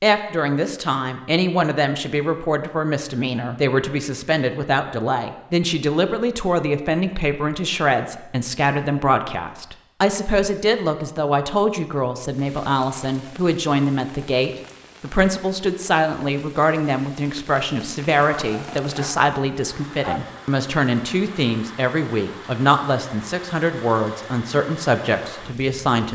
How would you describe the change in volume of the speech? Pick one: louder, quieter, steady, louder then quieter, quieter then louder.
steady.